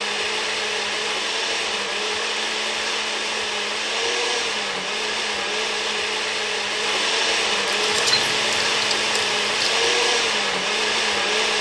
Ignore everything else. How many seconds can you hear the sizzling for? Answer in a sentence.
The sizzling can be heard for 2 seconds in total.